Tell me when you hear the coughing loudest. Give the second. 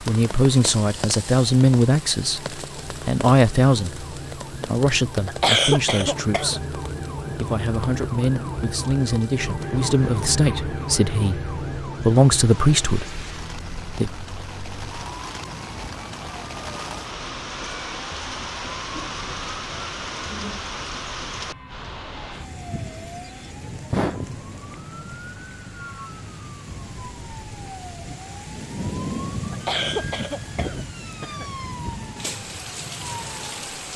6 s.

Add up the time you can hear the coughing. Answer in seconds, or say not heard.
3 s.